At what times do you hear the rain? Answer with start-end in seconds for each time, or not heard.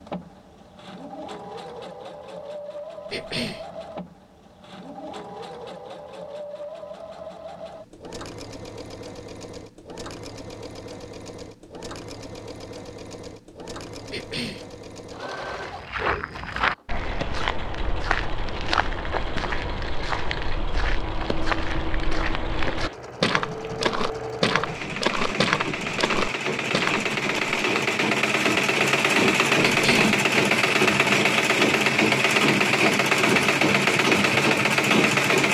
not heard.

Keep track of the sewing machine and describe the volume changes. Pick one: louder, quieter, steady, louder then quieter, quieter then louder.
louder.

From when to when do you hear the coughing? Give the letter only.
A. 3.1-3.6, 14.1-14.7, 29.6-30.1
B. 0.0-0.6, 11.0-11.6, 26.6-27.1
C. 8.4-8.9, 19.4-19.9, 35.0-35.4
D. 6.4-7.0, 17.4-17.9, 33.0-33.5
A.